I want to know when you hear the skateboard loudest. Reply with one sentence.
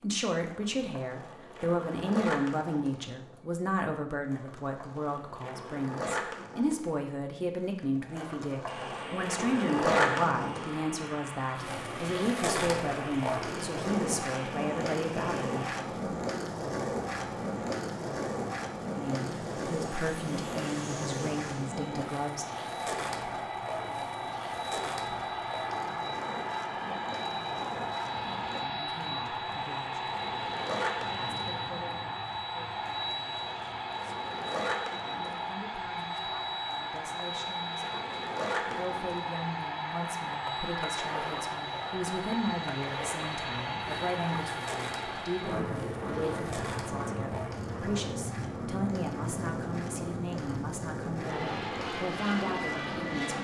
The volume of the skateboard peaks at 10 seconds.